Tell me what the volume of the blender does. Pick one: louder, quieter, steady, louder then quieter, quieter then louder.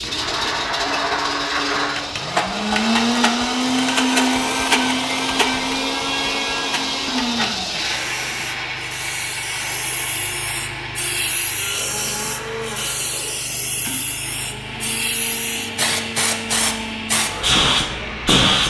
quieter.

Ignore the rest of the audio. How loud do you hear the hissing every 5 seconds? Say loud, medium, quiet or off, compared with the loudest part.
medium, medium, medium, loud.